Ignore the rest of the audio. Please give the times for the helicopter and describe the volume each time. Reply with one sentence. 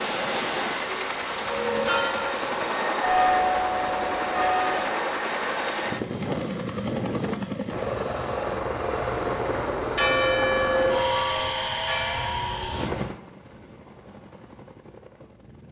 The helicopter can be heard from 0.0 to 15.6 s, getting quieter.